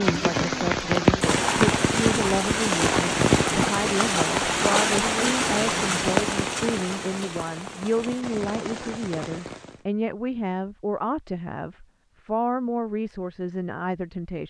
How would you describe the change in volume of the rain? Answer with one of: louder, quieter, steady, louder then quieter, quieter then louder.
quieter.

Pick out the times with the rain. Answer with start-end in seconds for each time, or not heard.
0.0-9.8.